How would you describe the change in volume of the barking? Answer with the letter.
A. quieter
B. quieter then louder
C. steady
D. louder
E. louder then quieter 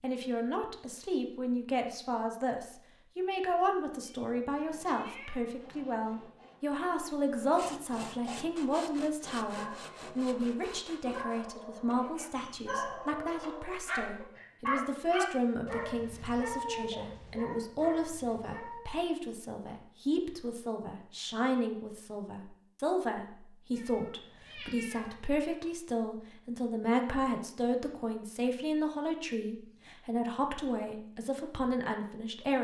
E.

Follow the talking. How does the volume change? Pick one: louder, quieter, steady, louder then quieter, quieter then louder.
steady.